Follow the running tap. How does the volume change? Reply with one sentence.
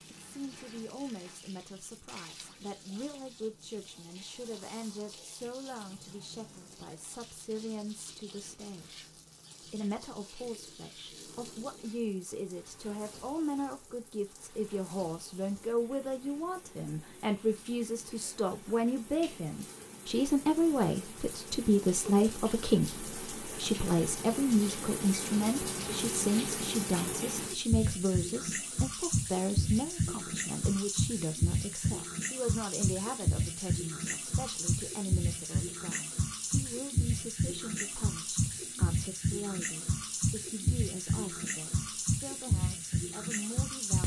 The volume of the running tap goes up.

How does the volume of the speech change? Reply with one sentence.
The volume of the speech goes up, then down.